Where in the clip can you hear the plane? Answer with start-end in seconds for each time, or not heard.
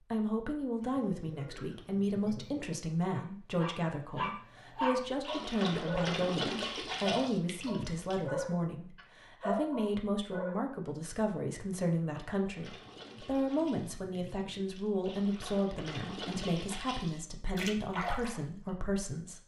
not heard.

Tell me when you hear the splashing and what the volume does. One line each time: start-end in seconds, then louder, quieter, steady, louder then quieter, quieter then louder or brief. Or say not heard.
5.2-8.2 brief
12.4-18.7 quieter then louder.